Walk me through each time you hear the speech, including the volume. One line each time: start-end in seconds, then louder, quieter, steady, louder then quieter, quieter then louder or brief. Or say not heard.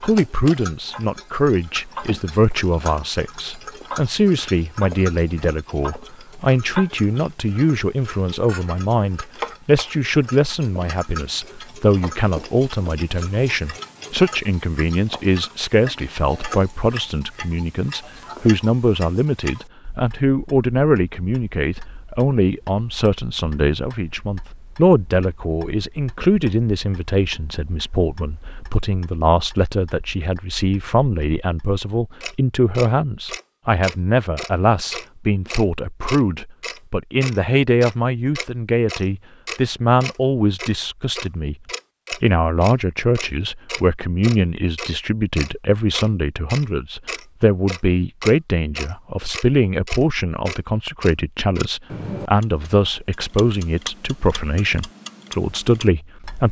0.0-56.4 steady.